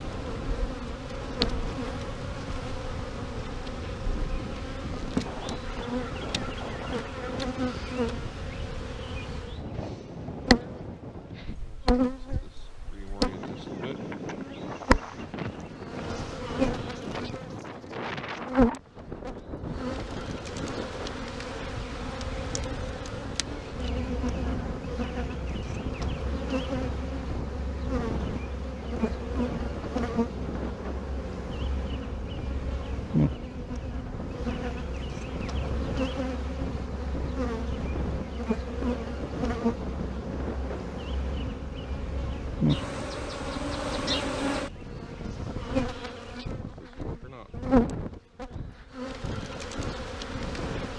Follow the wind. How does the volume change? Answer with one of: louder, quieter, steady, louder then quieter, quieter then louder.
steady.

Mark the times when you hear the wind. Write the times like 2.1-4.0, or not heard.
0.0-50.9.